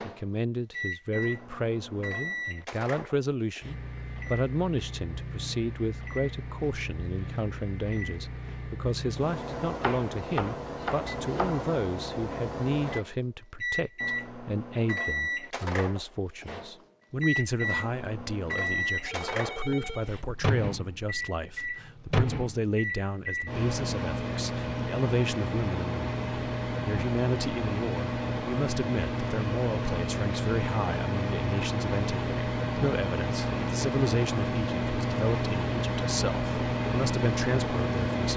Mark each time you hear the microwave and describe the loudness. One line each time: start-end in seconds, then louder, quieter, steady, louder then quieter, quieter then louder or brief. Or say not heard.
0.0-38.3 louder.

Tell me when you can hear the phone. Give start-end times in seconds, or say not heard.
18.8-20.4.